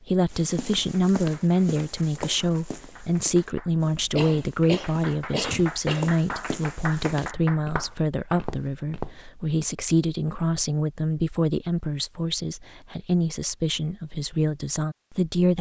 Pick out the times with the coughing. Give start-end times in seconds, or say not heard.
4.2-6.2.